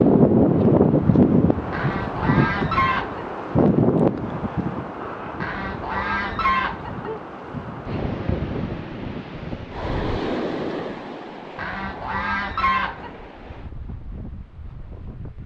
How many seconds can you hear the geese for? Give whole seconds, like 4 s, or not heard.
5 s.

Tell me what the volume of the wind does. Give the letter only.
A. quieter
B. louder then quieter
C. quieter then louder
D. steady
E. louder
A.